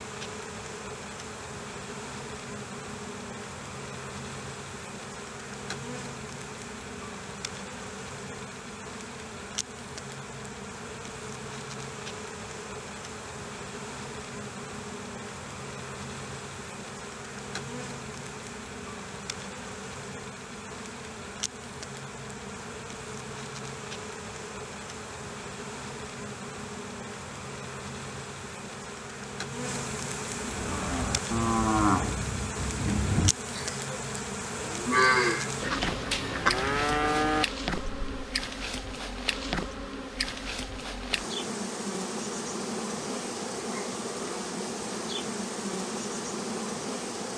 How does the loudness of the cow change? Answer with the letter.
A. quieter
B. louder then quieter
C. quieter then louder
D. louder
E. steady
C.